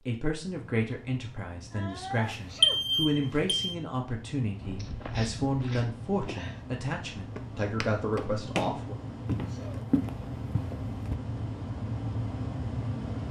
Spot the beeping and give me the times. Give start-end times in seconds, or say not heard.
2.2-3.8.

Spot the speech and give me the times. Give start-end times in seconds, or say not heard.
0.1-8.9.